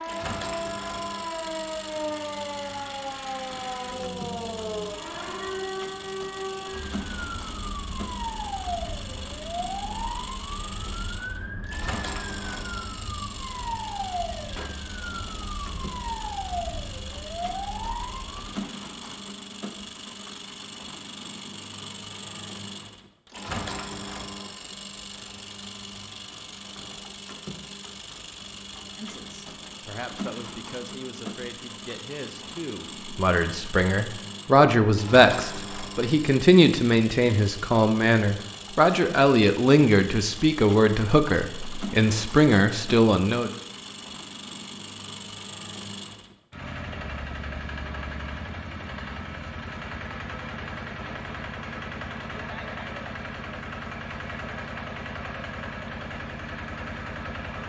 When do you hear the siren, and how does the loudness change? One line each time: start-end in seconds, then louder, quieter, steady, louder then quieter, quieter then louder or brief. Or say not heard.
0.0-18.6 steady.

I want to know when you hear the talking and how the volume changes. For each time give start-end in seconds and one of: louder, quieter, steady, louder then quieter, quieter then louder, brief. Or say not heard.
28.9-43.5 louder.